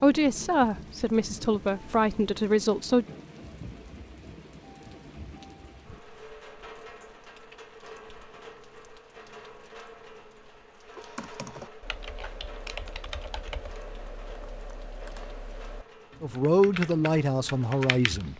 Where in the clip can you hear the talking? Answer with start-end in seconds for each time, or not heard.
0.0-3.0, 16.2-18.3.